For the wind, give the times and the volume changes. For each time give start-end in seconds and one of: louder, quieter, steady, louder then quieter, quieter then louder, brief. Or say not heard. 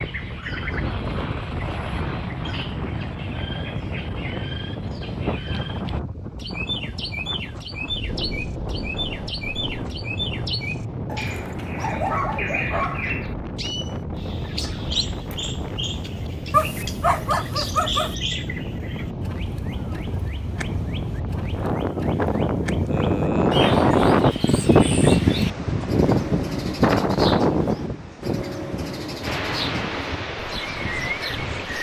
0.0-31.7 louder.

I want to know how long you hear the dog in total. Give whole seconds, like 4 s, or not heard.
4 s.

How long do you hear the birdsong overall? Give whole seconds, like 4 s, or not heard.
32 s.